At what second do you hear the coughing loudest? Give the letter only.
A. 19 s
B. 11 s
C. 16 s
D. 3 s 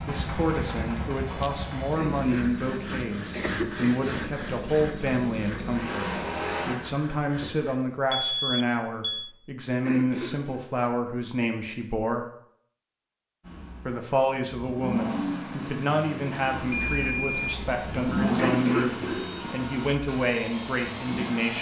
A.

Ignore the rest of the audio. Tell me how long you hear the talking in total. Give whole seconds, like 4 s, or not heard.
20 s.